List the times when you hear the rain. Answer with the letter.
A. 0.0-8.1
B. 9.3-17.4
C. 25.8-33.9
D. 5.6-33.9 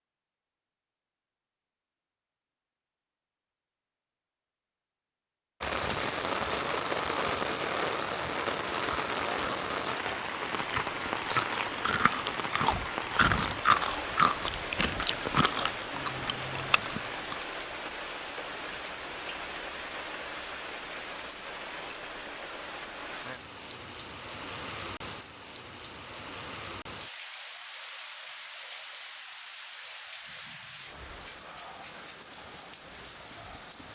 D.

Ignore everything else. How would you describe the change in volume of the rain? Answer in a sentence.
The loudness of the rain goes down.